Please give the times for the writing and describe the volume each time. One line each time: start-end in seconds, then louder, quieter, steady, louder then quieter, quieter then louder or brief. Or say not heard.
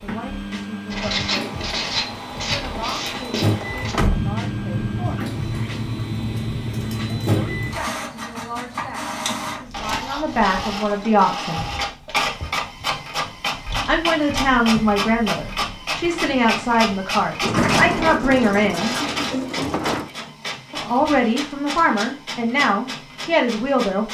0.9-7.8 steady.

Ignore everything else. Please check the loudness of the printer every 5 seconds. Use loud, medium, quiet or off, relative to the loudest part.
loud, loud, loud, loud, medium.